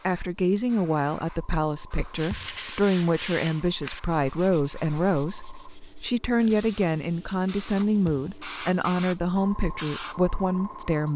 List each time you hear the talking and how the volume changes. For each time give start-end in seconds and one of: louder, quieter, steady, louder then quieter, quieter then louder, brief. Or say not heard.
0.0-11.1 steady.